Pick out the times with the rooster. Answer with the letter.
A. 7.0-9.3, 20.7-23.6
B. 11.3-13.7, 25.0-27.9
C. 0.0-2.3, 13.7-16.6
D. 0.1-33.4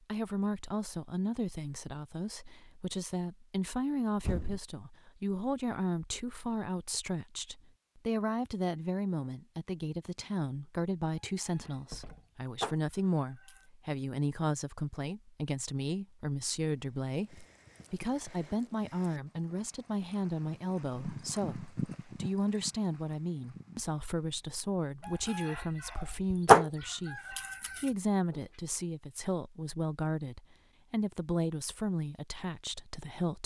B.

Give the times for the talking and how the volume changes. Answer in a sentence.
The talking can be heard from 0.1 to 33.4 s, at a steady volume.